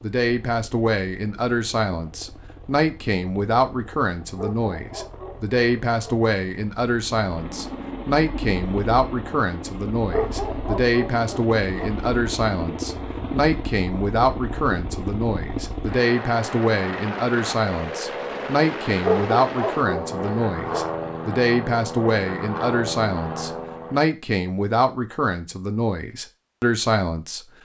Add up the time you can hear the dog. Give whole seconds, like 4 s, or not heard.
6 s.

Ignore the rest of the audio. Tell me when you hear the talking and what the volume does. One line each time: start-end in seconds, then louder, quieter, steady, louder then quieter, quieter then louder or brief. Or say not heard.
0.0-27.4 steady.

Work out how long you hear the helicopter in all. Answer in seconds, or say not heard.
24 s.